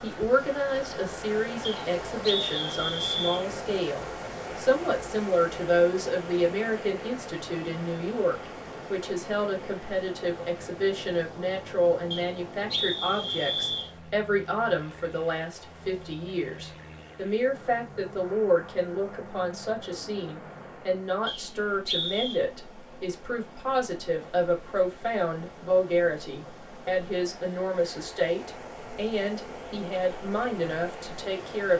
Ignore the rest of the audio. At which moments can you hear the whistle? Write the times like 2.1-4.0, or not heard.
1.6-3.5, 12.1-13.9, 21.2-22.4.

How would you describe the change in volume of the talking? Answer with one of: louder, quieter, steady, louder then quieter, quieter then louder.
steady.